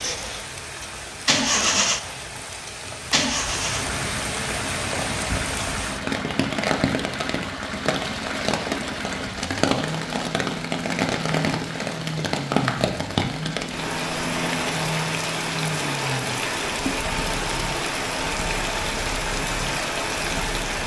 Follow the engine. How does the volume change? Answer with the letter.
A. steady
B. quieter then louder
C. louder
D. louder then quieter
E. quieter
E.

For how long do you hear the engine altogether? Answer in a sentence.
You can hear the engine for 21 seconds altogether.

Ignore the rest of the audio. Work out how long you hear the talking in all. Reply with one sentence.
You can't hear the talking here.